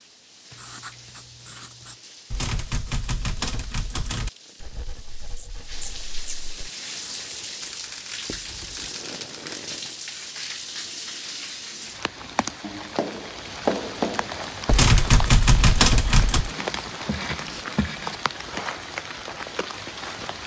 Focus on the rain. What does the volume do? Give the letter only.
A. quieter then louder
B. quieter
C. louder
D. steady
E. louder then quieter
C.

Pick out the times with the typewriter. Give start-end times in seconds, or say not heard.
2.3-4.3, 7.6-9.6, 14.7-16.5.